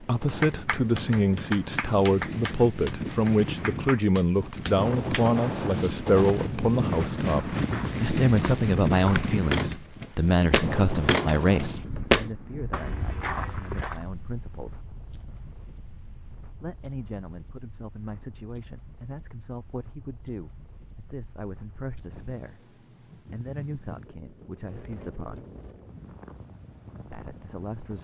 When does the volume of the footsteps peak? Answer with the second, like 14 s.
12 s.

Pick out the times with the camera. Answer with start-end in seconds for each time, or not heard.
not heard.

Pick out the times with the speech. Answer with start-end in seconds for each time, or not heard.
0.0-14.8, 16.6-25.4, 27.1-27.9.